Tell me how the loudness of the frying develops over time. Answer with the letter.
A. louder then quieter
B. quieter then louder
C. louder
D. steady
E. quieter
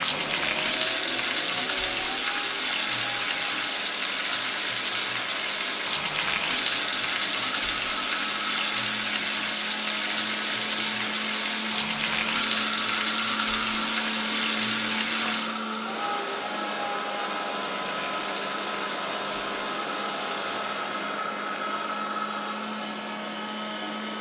E.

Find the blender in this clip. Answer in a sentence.
You can hear the blender from 0.0 to 24.1 s.